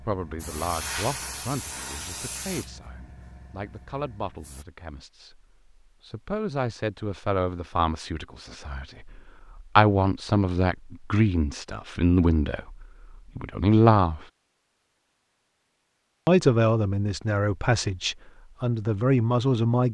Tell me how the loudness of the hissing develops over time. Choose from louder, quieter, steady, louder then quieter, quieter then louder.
quieter.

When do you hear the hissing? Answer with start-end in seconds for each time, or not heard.
0.0-4.7.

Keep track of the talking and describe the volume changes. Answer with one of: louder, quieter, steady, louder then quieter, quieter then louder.
louder.